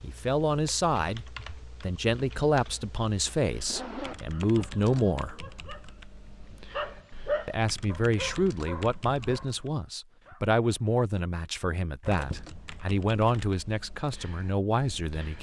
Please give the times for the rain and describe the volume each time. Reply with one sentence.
You can't hear the rain here.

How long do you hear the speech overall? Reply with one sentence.
The speech can be heard for 13 seconds in total.